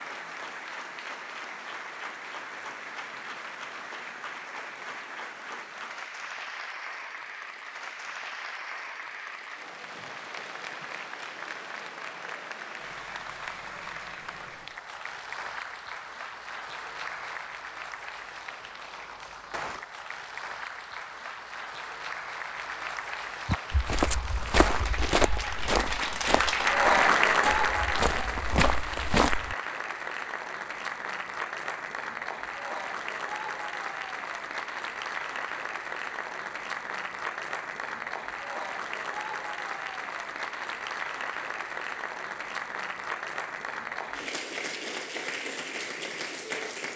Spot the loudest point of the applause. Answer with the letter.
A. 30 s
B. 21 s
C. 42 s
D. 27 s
D.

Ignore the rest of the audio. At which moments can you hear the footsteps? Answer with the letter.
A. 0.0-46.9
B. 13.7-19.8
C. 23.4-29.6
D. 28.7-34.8
C.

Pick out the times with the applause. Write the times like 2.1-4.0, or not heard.
0.0-46.9.